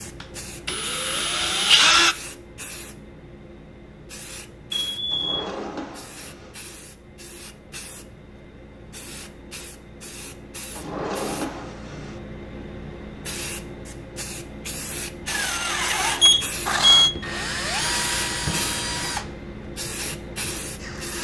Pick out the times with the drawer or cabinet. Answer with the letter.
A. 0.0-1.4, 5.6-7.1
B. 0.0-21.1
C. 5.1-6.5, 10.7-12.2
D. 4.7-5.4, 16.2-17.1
C.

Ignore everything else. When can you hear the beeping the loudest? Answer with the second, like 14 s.
17 s.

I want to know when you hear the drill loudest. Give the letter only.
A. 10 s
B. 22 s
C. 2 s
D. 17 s
C.